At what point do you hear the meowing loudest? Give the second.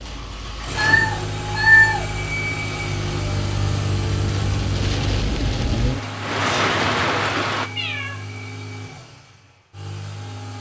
2 s.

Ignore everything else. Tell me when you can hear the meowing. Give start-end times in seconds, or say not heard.
0.8-2.0, 7.8-8.2.